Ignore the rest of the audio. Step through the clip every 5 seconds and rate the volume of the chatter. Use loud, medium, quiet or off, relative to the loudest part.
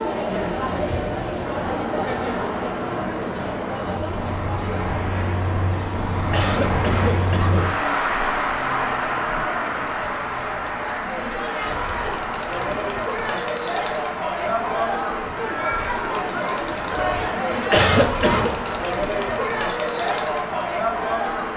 loud, medium, loud, loud, loud.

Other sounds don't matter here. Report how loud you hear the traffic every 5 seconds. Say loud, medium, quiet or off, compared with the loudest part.
medium, loud, medium, medium, medium.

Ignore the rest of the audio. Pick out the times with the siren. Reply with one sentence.
You can't hear the siren here.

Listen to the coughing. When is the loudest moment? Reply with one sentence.
The loudest moment of the coughing is at 18 seconds.